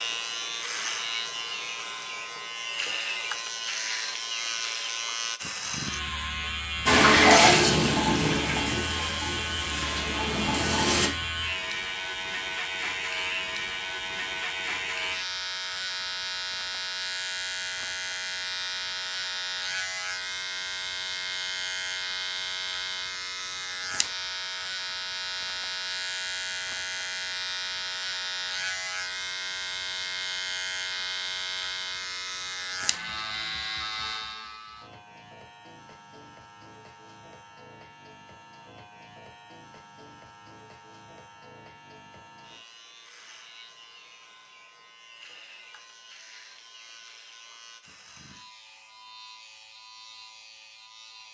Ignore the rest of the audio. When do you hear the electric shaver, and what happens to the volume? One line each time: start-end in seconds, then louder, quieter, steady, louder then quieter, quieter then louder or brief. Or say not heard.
0.0-51.2 quieter.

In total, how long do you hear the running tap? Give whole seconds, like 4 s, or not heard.
4 s.